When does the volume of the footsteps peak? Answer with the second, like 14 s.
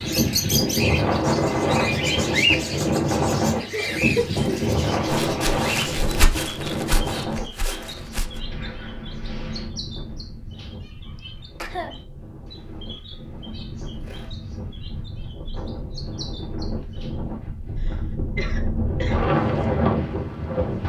6 s.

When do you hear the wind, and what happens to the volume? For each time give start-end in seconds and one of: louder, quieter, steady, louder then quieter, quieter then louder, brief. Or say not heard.
0.0-20.8 quieter then louder.